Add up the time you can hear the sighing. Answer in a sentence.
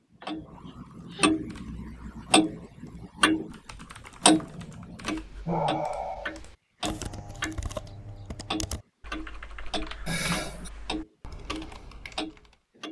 You can hear the sighing for 3 seconds altogether.